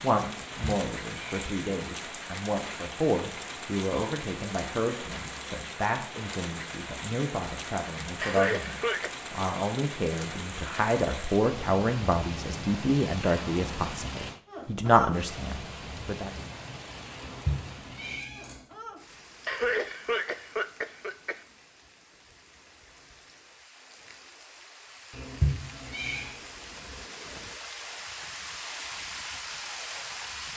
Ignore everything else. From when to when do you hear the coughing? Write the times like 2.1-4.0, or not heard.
8.2-9.1, 19.4-21.4.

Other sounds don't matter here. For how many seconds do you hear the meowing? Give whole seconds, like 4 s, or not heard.
4 s.